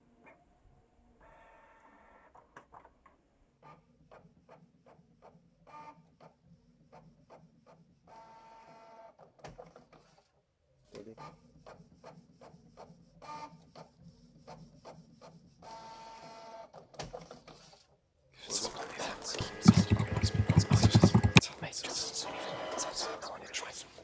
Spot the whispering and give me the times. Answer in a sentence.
The whispering can be heard from 18.4 to 23.9 s.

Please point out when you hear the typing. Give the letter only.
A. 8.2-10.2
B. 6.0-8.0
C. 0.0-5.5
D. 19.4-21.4
D.